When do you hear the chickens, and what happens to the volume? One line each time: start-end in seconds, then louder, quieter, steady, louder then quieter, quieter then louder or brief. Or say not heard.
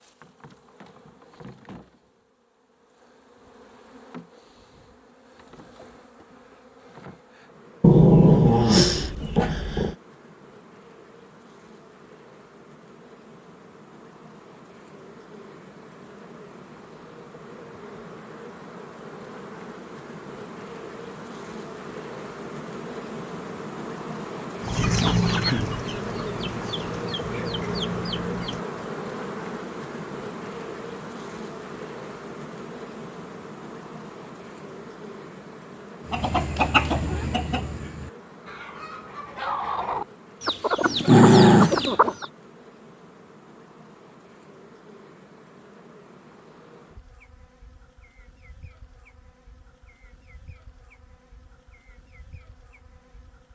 24.6-28.8 quieter then louder
36.0-42.3 quieter then louder.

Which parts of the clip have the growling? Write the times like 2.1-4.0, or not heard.
7.8-9.9, 40.8-42.0.